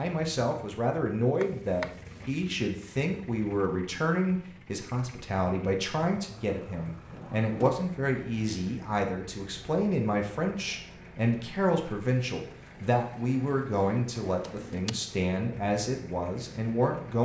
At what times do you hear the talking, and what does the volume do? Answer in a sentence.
You can hear the talking from 0.0 to 17.1 s, at a steady volume.